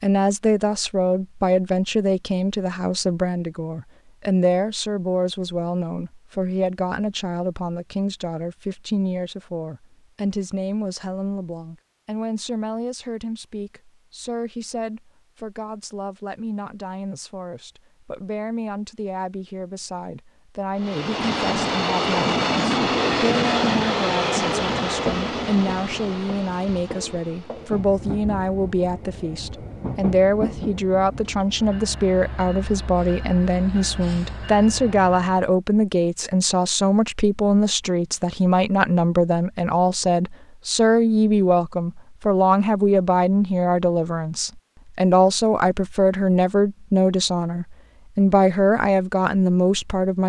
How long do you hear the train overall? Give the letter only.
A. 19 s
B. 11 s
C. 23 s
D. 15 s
D.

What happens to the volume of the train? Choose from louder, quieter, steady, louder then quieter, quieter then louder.
quieter.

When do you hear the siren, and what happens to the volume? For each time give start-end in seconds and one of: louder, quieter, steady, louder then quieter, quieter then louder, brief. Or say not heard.
not heard.